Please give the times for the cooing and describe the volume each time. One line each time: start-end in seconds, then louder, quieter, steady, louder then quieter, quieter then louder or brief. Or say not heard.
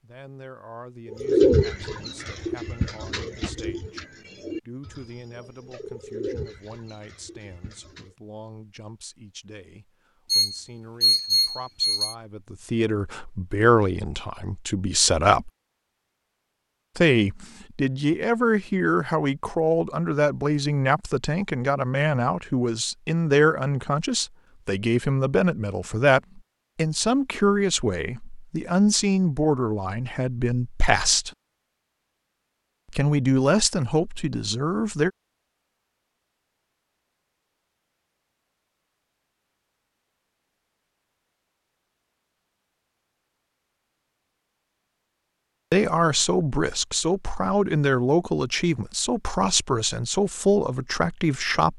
1.1-8.2 quieter.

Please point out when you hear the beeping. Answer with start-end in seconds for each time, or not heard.
10.3-12.2.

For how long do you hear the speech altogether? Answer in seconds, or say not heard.
38 s.